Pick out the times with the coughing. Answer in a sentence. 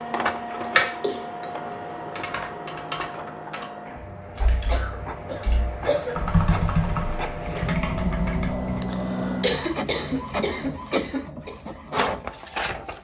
You can hear the coughing from 1.0 to 1.5 s, from 4.7 to 6.2 s and from 9.4 to 11.5 s.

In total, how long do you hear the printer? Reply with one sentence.
You can hear the printer for 13 seconds altogether.